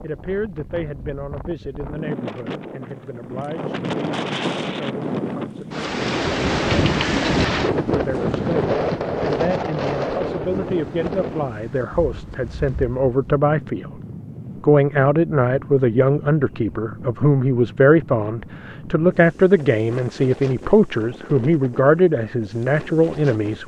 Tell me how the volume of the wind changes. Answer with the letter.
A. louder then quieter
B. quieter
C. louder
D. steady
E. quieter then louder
A.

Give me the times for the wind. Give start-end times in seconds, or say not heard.
0.0-23.6.